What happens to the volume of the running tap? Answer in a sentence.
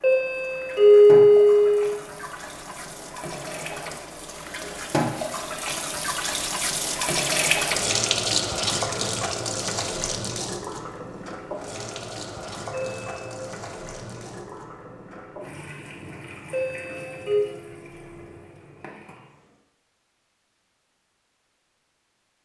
The loudness of the running tap goes up, then down.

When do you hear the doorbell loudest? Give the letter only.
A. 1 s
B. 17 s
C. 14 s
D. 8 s
A.